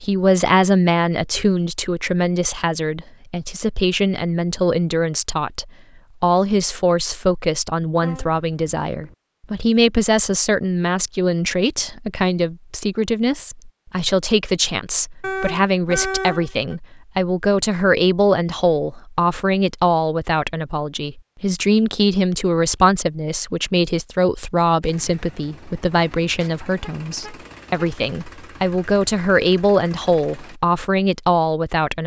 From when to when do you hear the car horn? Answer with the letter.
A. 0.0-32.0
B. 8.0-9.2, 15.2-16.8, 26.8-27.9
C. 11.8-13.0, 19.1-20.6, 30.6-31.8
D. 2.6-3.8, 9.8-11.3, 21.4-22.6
B.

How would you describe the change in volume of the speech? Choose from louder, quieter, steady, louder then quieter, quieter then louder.
steady.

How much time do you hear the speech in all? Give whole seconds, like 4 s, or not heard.
32 s.